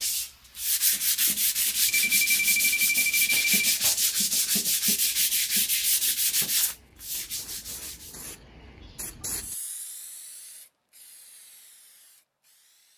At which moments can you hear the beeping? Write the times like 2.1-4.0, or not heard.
1.9-3.6.